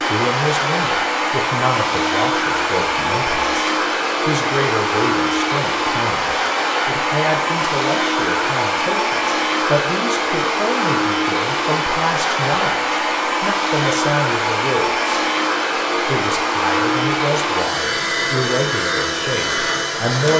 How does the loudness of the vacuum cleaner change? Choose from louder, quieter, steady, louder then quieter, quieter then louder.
steady.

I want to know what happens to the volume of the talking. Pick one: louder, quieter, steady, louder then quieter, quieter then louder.
steady.